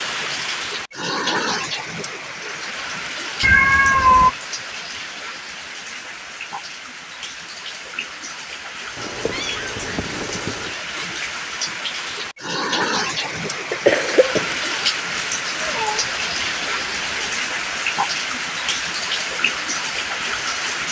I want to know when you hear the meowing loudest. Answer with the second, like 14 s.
4 s.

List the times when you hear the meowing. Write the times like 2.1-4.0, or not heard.
3.4-4.3, 8.9-10.8, 15.6-17.4.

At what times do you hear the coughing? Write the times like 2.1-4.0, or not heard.
13.2-14.6.